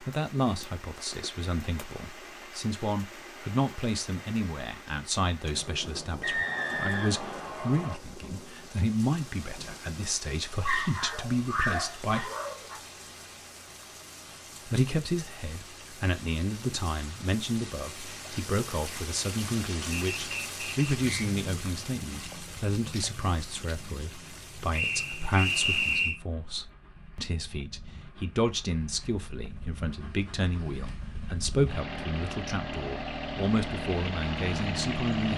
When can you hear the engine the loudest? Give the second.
35 s.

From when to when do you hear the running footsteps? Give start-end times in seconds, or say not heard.
not heard.